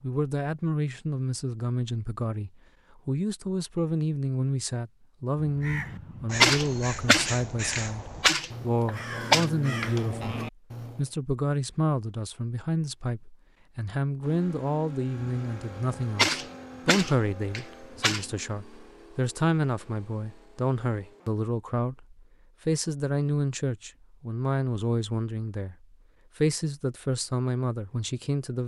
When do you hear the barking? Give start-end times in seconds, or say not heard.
not heard.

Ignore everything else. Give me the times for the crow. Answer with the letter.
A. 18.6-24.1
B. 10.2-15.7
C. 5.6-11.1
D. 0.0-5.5
C.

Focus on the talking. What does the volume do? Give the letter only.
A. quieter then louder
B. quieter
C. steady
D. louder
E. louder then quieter
C.